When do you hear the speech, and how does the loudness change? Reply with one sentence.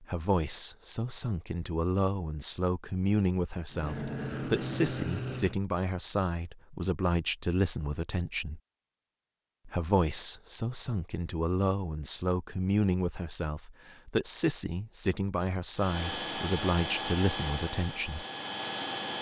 You can hear the speech from 0.0 to 8.6 s, at a steady volume; and from 9.7 to 18.2 s, at a steady volume.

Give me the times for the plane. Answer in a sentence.
You can hear the plane from 3.7 to 5.6 s and from 15.8 to 19.1 s.